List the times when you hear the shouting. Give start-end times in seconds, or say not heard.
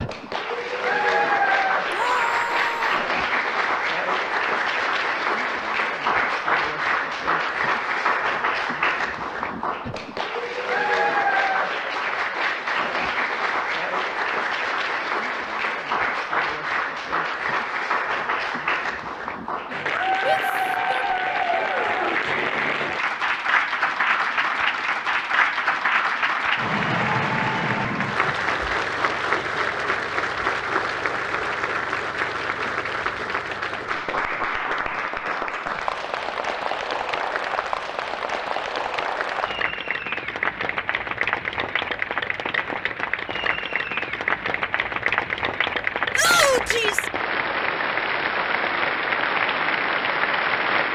1.9-3.0, 20.2-21.1, 46.1-47.1.